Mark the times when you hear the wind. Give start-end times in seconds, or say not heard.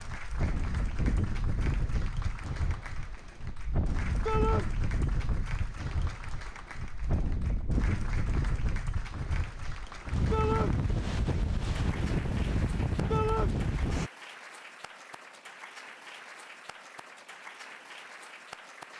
0.0-14.1.